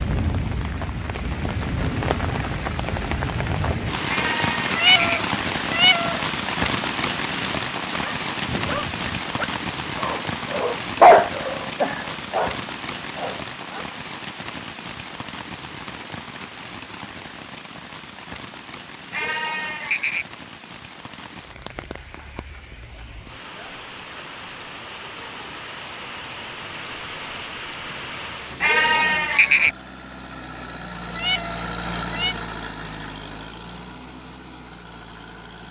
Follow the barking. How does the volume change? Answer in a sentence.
The volume of the barking goes up, then down.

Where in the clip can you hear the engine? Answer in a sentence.
The engine can be heard from 28.4 to 35.6 s.